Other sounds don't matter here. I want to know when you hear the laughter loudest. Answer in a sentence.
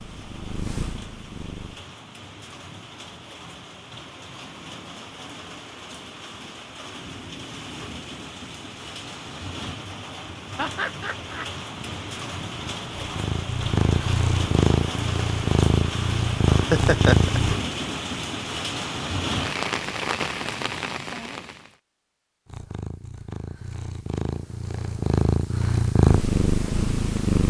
The volume of the laughter peaks at 17 seconds.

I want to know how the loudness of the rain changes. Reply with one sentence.
The loudness of the rain goes up.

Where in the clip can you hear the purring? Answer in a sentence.
You can hear the purring from 0.0 to 1.9 s, from 11.8 to 17.6 s and from 22.4 to 27.4 s.